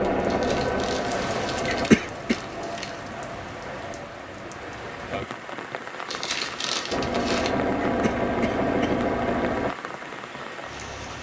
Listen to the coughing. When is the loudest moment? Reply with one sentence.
The loudest moment of the coughing is at 2 seconds.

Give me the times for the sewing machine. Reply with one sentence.
The sewing machine can be heard from 0.0 to 1.9 s and from 6.9 to 9.7 s.